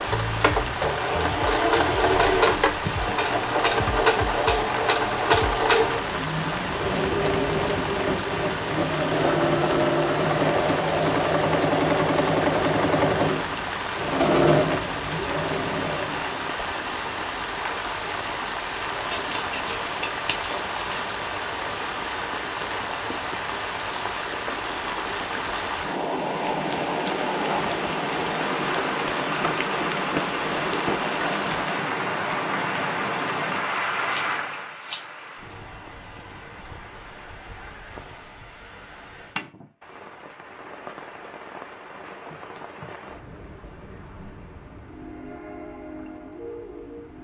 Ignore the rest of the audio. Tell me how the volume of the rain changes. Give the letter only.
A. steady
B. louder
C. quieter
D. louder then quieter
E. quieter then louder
C.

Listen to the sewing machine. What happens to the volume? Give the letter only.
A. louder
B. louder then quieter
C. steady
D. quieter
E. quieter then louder
C.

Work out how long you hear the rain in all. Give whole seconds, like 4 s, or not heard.
47 s.